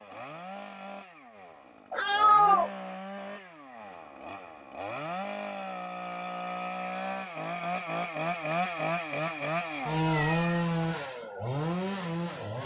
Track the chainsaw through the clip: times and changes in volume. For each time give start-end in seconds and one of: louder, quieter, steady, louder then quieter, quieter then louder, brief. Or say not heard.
0.0-12.6 louder.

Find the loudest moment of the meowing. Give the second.
2 s.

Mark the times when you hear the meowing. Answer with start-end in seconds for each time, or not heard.
1.9-2.7, 10.0-10.7.